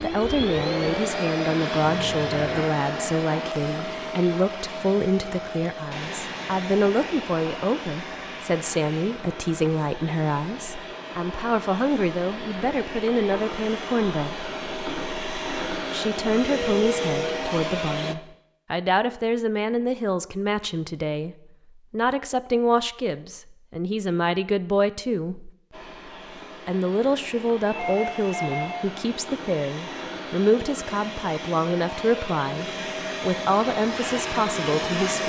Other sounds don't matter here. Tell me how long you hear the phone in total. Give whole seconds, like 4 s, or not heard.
3 s.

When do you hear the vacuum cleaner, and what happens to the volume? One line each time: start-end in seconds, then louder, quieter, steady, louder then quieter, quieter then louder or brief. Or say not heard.
0.0-18.1 quieter then louder
25.7-35.2 louder.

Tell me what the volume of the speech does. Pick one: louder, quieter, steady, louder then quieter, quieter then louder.
steady.